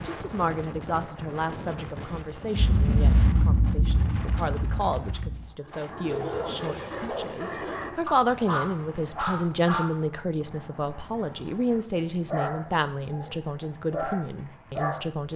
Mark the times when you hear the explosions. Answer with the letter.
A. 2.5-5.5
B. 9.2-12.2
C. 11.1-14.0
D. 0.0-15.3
A.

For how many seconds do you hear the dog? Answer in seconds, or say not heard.
9 s.